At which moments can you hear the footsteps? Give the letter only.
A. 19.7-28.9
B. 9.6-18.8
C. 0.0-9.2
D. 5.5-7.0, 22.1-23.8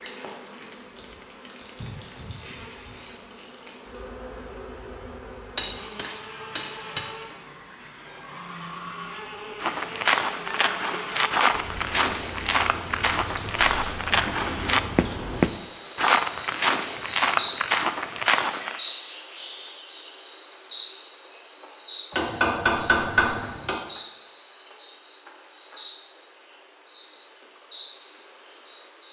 B.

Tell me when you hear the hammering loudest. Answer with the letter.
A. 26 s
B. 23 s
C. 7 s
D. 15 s
B.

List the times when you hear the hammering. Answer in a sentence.
The hammering can be heard from 5.5 to 7.0 s and from 22.1 to 23.8 s.